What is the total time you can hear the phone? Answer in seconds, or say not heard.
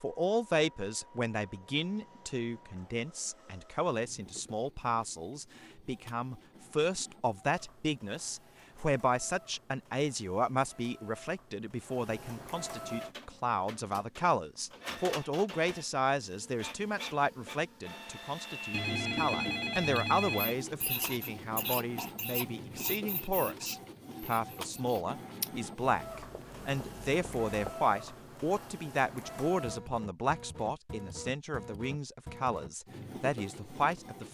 2 s.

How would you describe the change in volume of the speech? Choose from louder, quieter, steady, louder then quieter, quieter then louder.
steady.